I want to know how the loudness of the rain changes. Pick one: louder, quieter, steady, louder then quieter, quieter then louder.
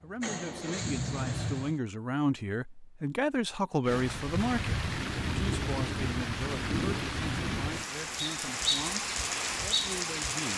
steady.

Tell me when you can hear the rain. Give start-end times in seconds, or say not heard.
3.9-10.5.